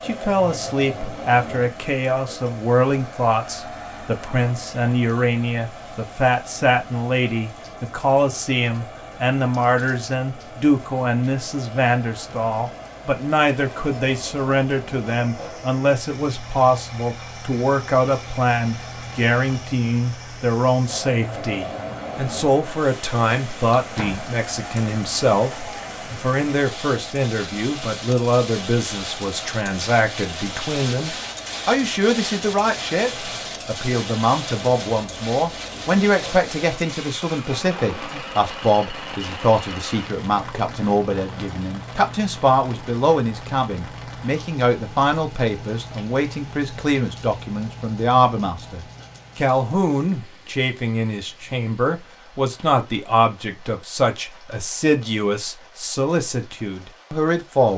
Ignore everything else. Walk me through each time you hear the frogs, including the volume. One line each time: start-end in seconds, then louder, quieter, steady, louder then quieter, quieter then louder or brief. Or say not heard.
not heard.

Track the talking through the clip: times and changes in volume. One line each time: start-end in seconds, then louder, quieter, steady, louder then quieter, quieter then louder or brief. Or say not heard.
0.0-57.7 steady.